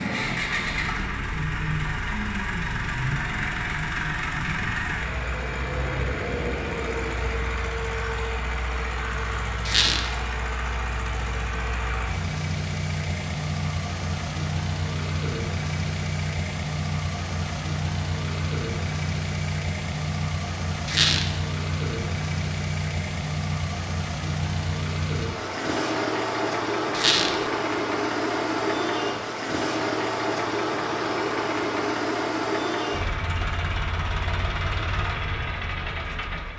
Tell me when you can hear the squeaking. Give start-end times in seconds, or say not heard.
9.7-10.1, 20.9-21.4, 26.9-27.4.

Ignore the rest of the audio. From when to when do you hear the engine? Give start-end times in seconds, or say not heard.
0.0-36.5.